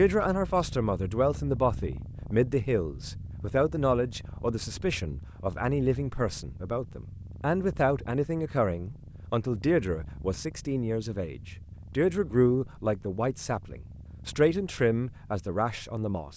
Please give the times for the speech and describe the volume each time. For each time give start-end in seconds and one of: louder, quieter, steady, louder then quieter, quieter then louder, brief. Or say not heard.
0.0-16.3 steady.